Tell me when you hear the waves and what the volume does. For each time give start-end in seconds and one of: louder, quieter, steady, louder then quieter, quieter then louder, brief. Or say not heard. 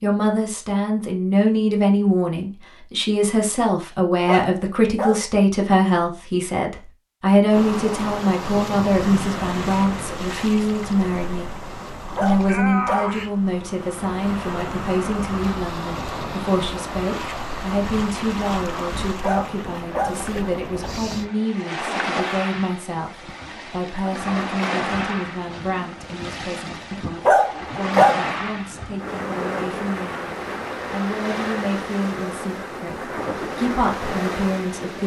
7.5-35.0 steady.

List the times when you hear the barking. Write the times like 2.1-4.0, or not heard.
4.2-5.2, 12.2-13.1, 19.2-20.1, 27.2-28.1.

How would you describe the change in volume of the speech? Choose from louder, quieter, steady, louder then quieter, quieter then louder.
quieter.